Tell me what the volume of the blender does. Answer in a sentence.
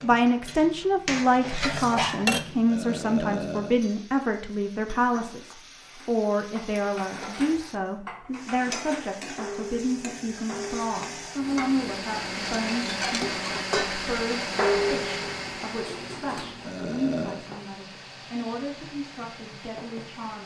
The volume of the blender goes down.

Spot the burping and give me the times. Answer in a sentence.
The burping can be heard from 2.6 to 3.8 s and from 16.6 to 17.5 s.